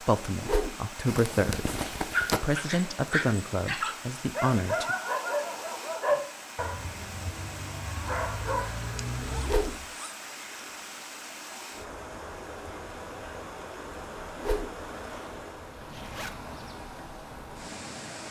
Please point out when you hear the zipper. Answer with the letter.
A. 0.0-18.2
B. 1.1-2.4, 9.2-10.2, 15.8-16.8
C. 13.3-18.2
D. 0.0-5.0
B.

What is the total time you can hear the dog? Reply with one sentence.
The dog can be heard for 8 seconds in total.